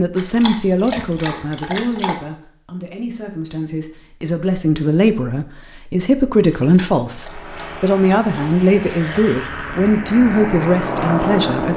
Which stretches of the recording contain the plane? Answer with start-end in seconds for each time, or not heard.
7.0-11.7.